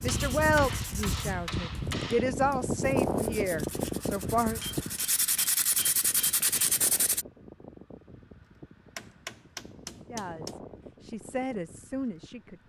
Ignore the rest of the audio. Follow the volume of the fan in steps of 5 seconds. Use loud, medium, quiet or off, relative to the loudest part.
loud, quiet, quiet.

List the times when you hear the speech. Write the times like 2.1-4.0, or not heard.
0.0-4.6, 10.1-12.6.